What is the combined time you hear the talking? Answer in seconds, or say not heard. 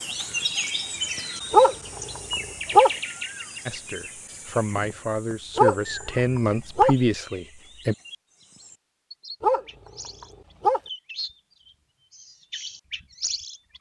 4 s.